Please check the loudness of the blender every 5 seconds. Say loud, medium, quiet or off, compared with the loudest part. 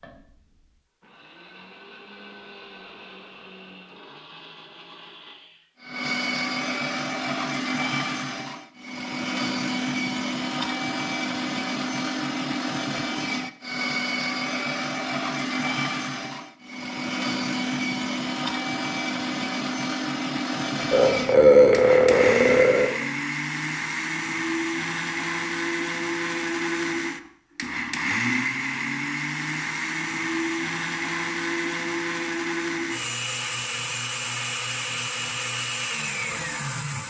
quiet, loud, loud, loud, loud, loud, loud, loud.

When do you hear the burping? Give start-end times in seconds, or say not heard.
20.9-22.9.